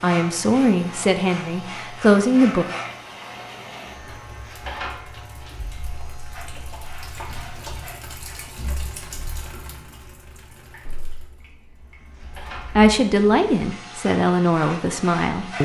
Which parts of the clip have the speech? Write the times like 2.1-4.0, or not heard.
0.0-2.6, 12.8-15.6.